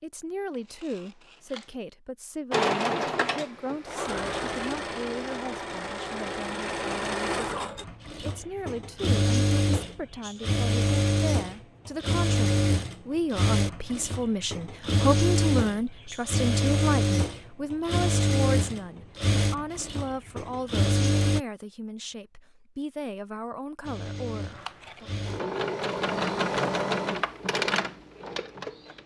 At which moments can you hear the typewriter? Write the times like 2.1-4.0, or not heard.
not heard.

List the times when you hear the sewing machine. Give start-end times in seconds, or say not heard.
2.5-21.4, 23.8-29.0.